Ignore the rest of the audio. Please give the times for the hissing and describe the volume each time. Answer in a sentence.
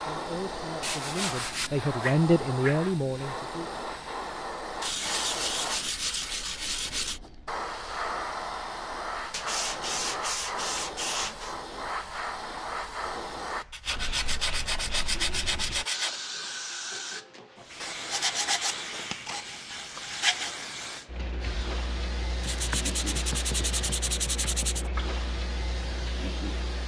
You can hear the hissing from 0.0 to 26.8 s, at a steady volume.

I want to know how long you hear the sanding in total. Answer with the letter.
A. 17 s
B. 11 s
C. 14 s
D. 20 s
C.